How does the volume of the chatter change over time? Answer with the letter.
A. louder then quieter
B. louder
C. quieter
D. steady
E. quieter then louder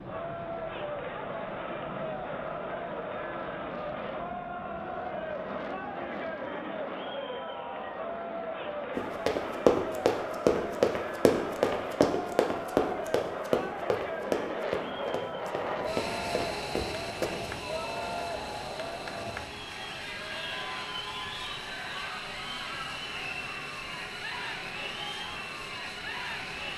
D.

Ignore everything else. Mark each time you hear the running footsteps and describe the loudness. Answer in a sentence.
You can hear the running footsteps from 8.9 to 17.5 s, getting quieter.